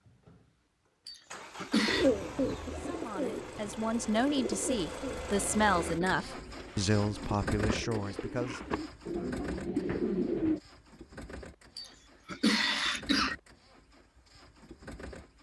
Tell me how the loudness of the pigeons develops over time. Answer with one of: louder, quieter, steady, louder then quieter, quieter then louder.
quieter then louder.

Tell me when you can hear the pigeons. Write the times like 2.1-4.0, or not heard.
1.9-10.6.